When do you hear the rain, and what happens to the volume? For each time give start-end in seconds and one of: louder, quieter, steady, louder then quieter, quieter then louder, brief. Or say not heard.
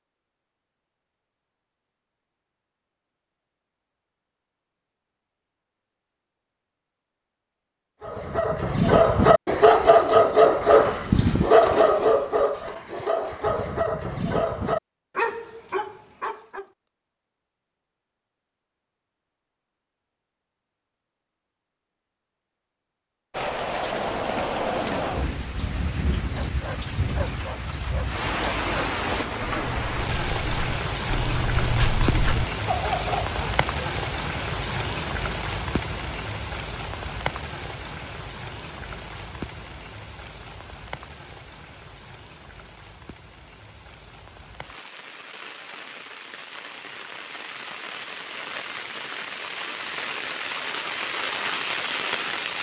23.3-52.5 quieter then louder.